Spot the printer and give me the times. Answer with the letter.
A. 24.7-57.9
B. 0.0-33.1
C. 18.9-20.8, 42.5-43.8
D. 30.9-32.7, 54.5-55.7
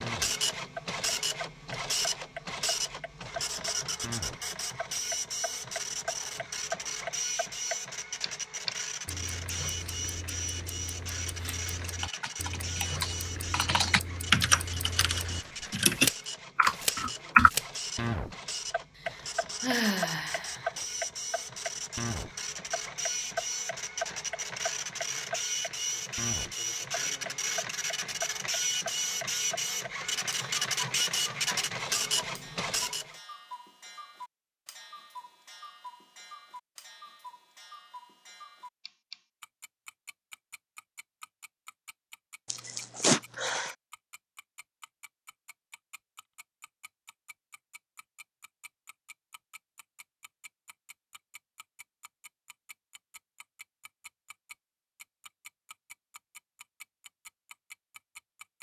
B.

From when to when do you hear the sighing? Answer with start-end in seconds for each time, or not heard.
18.9-20.8, 42.5-43.8.